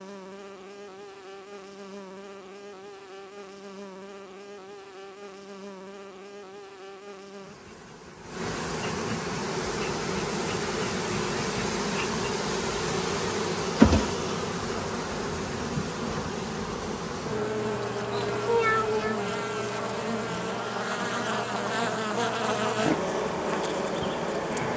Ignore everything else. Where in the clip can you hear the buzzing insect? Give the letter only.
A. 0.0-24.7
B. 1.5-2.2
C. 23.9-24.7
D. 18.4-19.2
A.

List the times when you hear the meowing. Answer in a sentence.
You can hear the meowing from 18.4 to 19.2 s.